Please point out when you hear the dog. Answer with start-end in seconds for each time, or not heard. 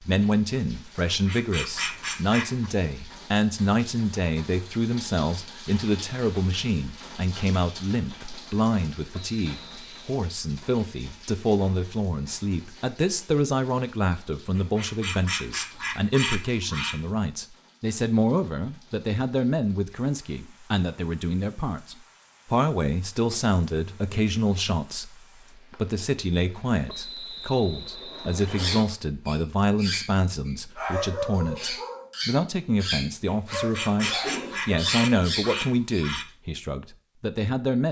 28.4-36.0.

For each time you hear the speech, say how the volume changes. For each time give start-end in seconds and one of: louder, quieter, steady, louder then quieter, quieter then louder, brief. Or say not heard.
0.0-25.1 steady
25.7-37.8 steady.